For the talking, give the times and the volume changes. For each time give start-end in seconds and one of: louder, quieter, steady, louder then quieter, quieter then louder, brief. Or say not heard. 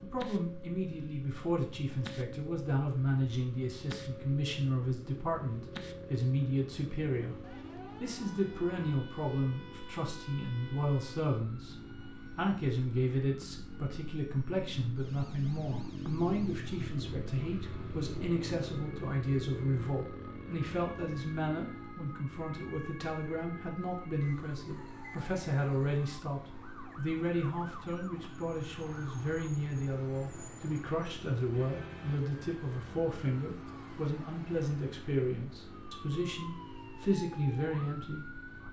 0.0-38.4 steady.